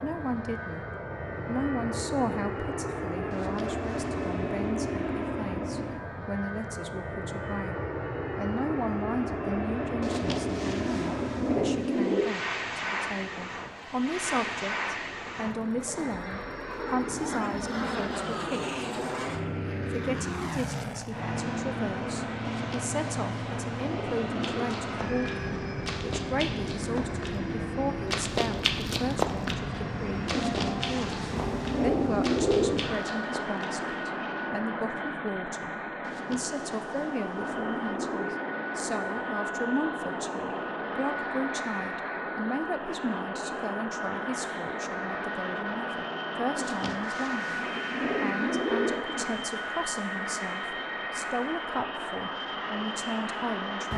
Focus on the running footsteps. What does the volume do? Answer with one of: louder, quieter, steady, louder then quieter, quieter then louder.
louder then quieter.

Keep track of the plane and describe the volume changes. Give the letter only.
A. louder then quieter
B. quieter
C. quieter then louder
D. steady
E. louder
D.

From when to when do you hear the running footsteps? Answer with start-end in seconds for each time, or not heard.
24.4-33.7.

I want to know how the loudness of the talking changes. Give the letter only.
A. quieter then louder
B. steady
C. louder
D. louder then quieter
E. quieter
B.